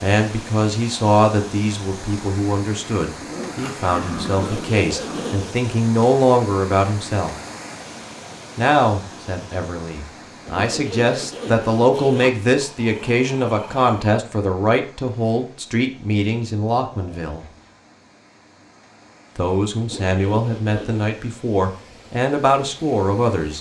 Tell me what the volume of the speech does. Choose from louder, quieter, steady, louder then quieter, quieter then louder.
steady.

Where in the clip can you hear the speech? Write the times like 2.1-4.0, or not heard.
0.0-7.3, 8.6-17.4, 19.4-23.5.